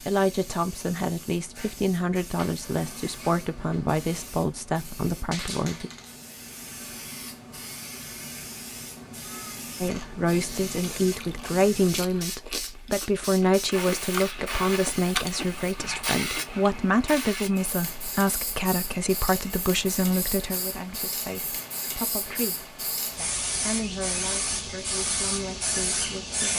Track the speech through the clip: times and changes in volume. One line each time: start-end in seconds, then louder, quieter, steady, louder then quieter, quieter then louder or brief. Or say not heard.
0.1-5.9 steady
9.8-26.5 quieter.